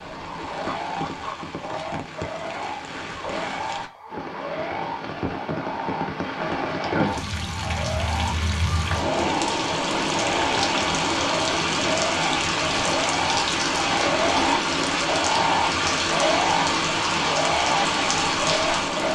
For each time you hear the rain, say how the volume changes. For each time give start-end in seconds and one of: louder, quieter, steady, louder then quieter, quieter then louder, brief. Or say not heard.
0.0-19.1 louder.